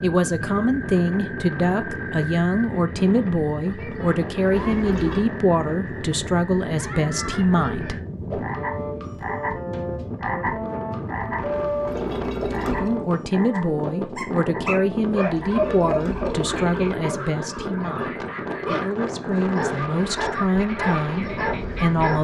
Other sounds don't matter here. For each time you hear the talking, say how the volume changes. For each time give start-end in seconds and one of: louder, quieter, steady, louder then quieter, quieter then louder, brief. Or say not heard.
0.0-8.0 steady
12.8-22.1 steady.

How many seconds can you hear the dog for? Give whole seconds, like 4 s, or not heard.
8 s.